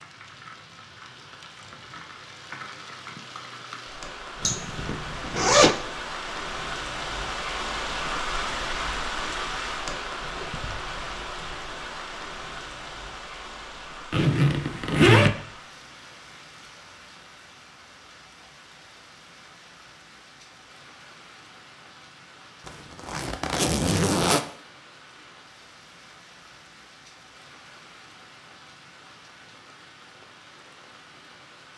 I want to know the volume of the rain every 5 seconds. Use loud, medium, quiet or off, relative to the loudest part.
medium, loud, medium, quiet, quiet, quiet, quiet.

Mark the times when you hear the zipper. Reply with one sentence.
The zipper can be heard from 4.4 to 5.8 s, from 14.1 to 15.3 s and from 22.6 to 24.4 s.